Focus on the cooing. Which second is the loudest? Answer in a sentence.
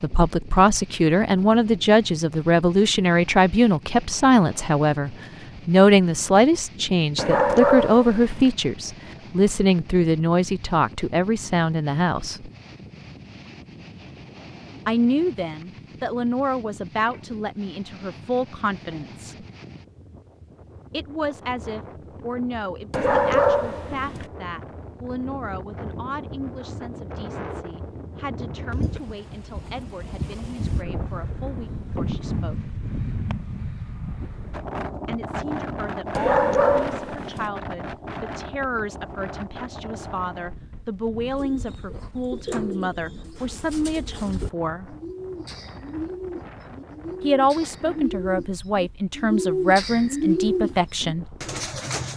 The loudest moment of the cooing is at 50 seconds.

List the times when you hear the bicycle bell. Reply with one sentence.
The bicycle bell can't be heard in this clip.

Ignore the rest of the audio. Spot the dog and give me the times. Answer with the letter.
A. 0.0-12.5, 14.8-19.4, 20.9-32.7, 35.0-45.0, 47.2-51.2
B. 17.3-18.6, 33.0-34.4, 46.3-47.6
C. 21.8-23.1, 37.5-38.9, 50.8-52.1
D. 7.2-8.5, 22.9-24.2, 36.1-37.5
D.